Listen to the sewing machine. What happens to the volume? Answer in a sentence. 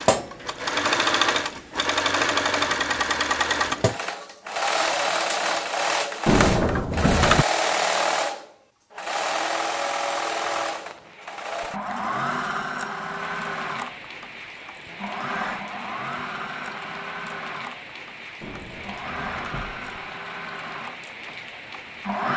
The volume of the sewing machine goes down.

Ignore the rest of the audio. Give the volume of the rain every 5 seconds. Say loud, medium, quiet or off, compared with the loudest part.
off, off, loud, loud, loud.